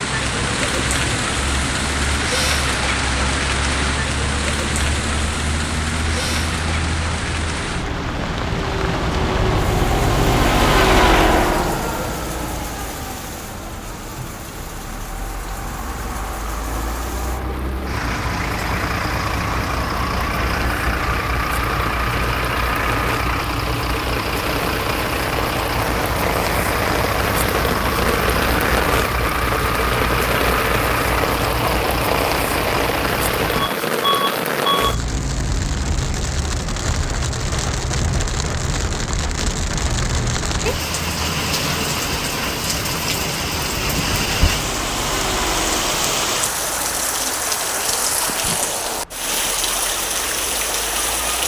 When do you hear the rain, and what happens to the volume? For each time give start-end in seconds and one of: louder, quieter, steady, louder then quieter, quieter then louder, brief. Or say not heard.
0.0-51.4 quieter then louder.